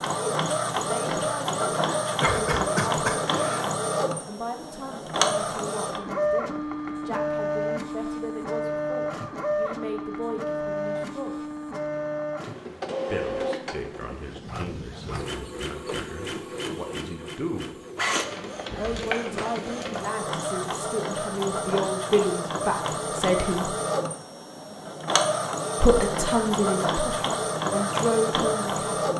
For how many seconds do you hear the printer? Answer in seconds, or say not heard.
29 s.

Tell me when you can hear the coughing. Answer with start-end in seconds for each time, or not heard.
2.2-3.7.